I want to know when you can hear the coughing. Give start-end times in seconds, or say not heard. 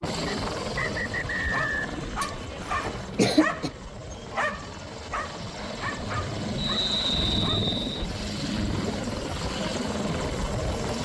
2.2-3.7.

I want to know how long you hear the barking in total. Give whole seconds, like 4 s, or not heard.
7 s.